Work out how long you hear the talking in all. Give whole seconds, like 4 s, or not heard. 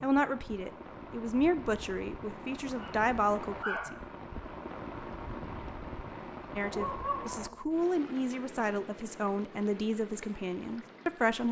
9 s.